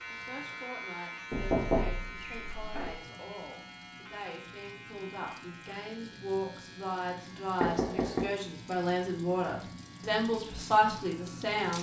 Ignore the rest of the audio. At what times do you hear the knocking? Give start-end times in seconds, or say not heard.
1.3-2.9, 7.6-8.3.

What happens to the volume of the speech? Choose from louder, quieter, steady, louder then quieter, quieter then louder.
louder.